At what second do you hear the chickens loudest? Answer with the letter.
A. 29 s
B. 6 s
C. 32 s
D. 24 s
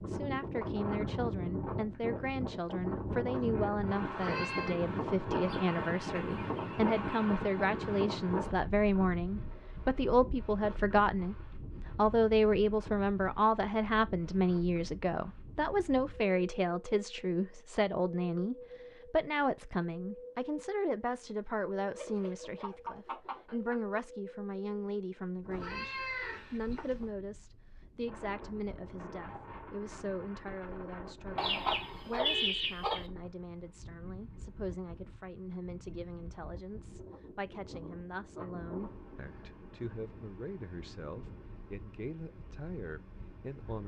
C.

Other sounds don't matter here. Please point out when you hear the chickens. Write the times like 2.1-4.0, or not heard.
5.3-7.2, 21.9-23.9, 31.4-33.0.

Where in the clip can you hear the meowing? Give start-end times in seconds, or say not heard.
4.1-4.8, 25.5-27.1.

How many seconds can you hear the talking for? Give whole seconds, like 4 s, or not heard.
44 s.